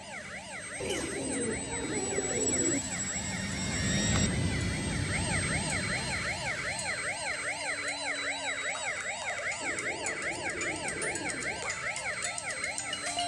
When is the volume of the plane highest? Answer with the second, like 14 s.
4 s.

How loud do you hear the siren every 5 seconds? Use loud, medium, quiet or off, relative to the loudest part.
medium, loud, loud.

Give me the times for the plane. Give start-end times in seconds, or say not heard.
0.0-13.2.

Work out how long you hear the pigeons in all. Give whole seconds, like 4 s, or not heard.
4 s.